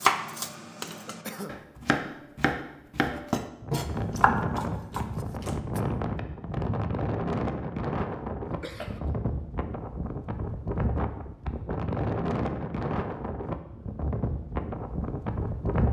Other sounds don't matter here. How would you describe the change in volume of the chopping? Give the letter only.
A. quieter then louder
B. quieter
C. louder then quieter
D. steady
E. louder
C.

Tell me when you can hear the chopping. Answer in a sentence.
The chopping can be heard from 0.0 to 5.8 s.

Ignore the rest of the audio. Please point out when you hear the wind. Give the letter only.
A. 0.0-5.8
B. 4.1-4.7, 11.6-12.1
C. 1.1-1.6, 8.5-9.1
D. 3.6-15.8
D.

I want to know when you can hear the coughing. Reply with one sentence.
The coughing can be heard from 1.1 to 1.6 s and from 8.5 to 9.1 s.